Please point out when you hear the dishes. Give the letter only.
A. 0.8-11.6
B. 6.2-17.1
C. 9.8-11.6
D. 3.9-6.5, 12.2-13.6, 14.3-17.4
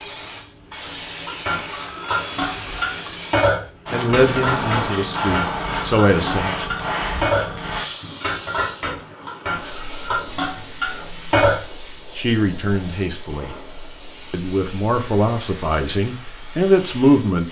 A.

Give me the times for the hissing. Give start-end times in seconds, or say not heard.
0.0-17.4.